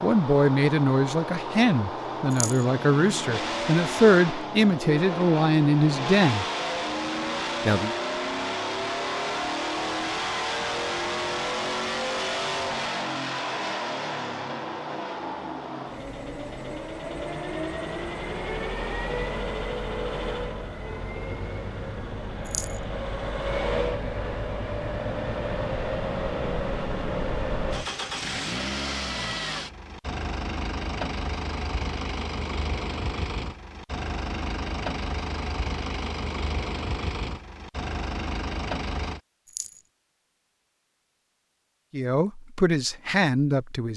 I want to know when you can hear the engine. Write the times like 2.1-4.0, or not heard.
0.0-39.2.